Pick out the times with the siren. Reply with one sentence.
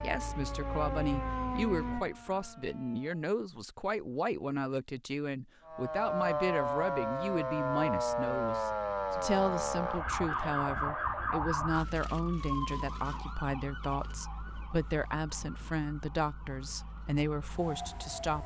You can hear the siren from 0.0 to 3.2 s and from 5.7 to 18.4 s.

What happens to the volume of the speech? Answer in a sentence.
The volume of the speech stays about the same.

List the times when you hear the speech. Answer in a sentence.
The speech can be heard from 0.0 to 18.4 s.